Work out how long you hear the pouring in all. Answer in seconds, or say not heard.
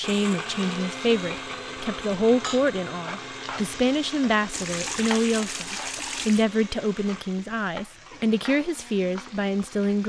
2 s.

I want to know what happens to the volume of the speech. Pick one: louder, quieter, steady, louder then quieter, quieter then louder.
steady.